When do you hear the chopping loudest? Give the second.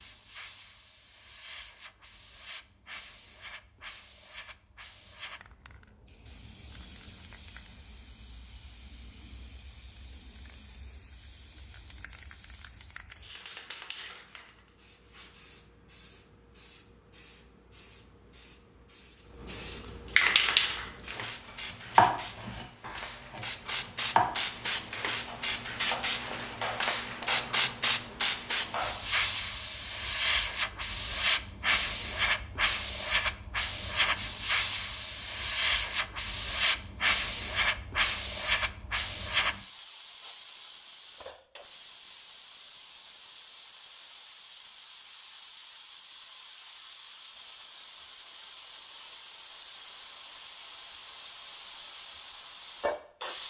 22 s.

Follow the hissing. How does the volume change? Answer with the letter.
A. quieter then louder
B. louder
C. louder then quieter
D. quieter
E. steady
C.